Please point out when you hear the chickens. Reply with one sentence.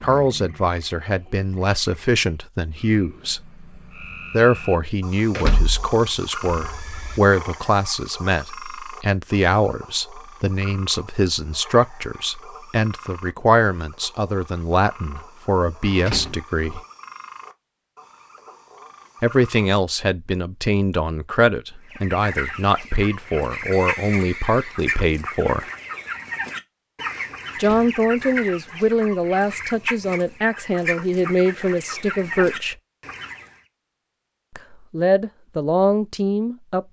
You can hear the chickens from 21.9 to 33.5 s.